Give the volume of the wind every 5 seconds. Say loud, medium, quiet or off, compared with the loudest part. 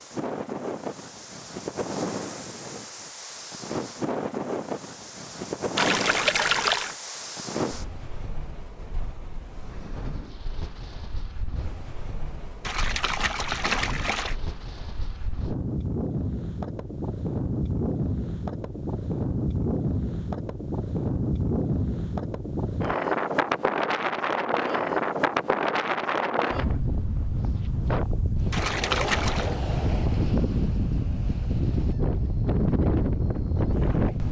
medium, medium, quiet, loud, loud, loud, loud.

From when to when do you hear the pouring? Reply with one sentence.
You can hear the pouring from 5.8 to 7.0 s, from 12.6 to 14.3 s and from 28.5 to 29.6 s.